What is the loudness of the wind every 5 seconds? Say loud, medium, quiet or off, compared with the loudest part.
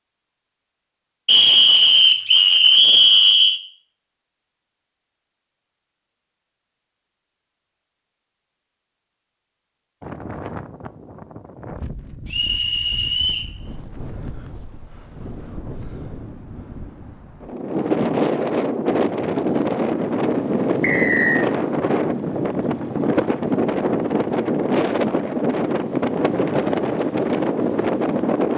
off, off, quiet, loud, loud, loud.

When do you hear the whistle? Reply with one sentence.
The whistle can be heard from 1.2 to 3.6 s, from 12.2 to 13.5 s and from 20.8 to 21.4 s.